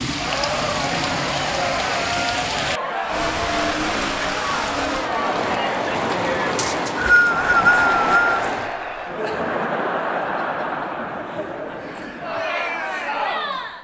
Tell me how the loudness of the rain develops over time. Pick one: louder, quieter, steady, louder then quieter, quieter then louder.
steady.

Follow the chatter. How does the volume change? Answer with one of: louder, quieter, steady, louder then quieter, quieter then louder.
steady.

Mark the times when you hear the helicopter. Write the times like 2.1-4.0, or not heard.
not heard.